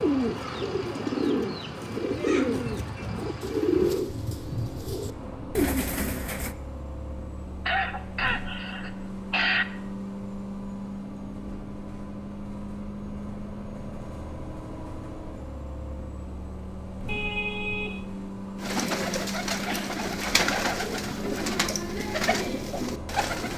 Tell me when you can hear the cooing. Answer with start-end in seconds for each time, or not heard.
0.0-6.5, 18.6-23.5.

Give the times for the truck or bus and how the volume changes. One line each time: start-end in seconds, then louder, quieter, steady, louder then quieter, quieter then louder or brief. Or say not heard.
0.0-23.5 steady.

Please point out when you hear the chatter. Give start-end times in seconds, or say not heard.
not heard.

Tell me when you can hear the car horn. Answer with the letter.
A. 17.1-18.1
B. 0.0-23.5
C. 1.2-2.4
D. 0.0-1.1
A.